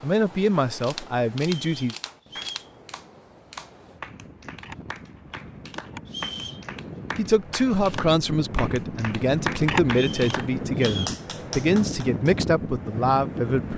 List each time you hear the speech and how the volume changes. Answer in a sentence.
You can hear the speech briefly from 0.0 to 1.9 s; and from 7.2 to 13.7 s, at a steady volume.